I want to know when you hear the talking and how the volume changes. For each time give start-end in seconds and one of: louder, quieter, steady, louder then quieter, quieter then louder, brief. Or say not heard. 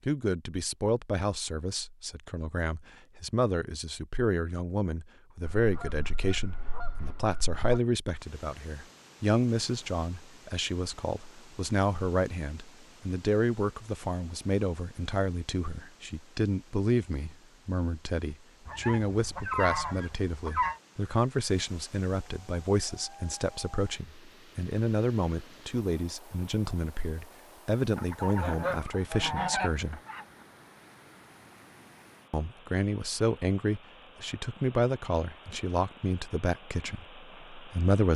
0.1-30.0 steady
32.3-38.1 quieter.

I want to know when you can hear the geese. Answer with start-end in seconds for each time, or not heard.
5.5-7.8, 18.6-20.8, 27.9-30.2.